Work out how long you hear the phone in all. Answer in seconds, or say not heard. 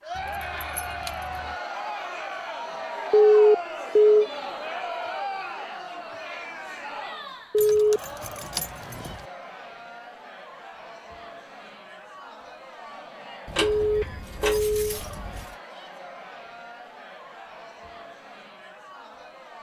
3 s.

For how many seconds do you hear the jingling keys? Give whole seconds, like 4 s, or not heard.
5 s.